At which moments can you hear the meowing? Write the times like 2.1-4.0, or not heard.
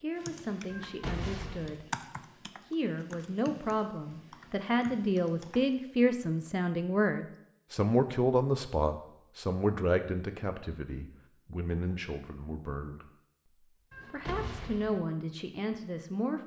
0.7-1.8, 13.9-15.0.